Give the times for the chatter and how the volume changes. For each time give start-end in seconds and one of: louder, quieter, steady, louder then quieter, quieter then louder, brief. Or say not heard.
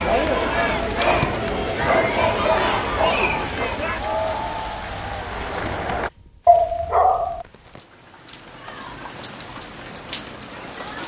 0.0-6.1 quieter.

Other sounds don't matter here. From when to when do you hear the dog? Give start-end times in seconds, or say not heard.
0.9-3.8, 6.5-7.5.